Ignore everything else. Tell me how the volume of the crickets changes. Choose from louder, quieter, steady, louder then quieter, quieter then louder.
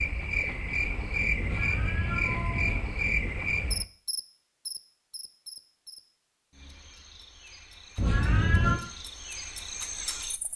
quieter then louder.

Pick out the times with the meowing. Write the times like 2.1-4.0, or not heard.
1.4-2.8, 8.0-8.8.